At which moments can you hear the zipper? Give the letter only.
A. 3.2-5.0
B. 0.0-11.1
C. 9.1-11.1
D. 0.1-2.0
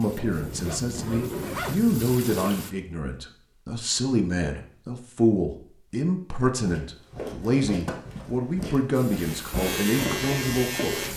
D.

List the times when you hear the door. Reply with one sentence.
You can't hear the door here.